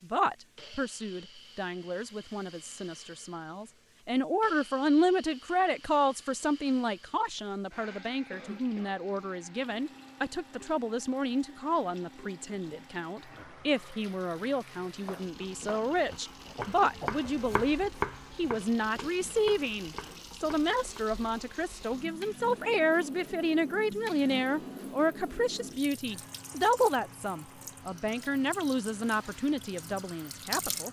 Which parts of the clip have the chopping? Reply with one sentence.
You can hear the chopping from 15.0 to 21.1 s.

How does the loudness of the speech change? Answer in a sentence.
The volume of the speech stays about the same.